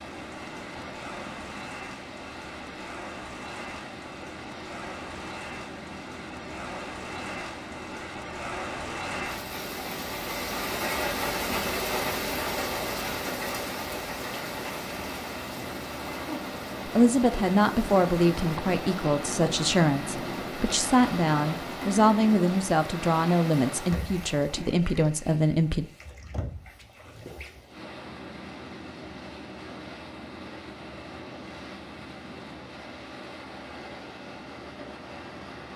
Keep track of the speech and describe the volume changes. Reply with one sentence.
The loudness of the speech stays about the same.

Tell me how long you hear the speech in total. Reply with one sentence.
The speech can be heard for 9 seconds in total.